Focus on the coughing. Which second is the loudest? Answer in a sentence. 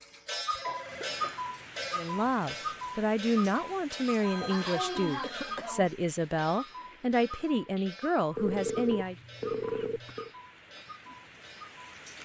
The volume of the coughing peaks at 5 seconds.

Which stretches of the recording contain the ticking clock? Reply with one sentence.
The ticking clock can be heard from 0.0 to 12.2 s.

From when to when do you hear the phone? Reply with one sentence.
The phone can be heard from 0.5 to 2.1 s, from 4.2 to 5.6 s and from 8.3 to 10.3 s.